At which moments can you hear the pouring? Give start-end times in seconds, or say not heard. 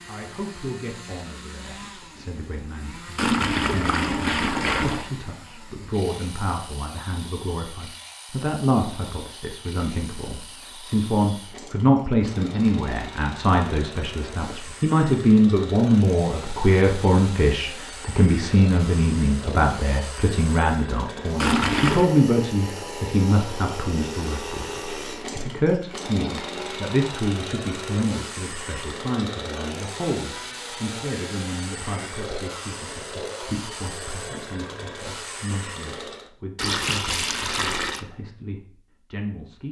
3.1-5.1, 21.4-22.1, 36.5-38.0.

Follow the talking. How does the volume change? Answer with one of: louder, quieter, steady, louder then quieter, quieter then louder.
louder then quieter.